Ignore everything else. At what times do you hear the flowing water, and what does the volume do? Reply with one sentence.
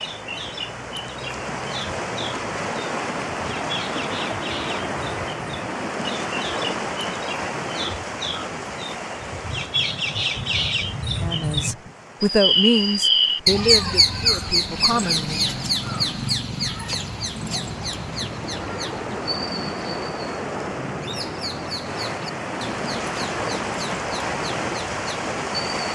You can hear the flowing water from 0.0 to 25.8 s, getting quieter then louder.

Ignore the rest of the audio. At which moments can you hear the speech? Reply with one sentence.
The speech can be heard from 11.2 to 15.4 s.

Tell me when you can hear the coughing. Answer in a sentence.
The coughing can't be heard in this clip.